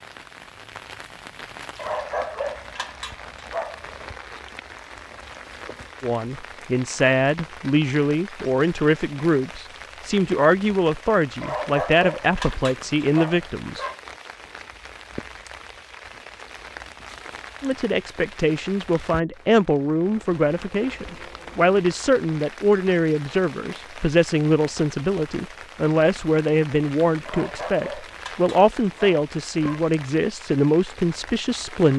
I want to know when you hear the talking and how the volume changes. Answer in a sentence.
You can hear the talking from 6.0 to 13.8 s, at a steady volume; and from 17.6 to 31.9 s, at a steady volume.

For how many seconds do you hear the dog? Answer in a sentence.
The dog can be heard for 7 seconds in total.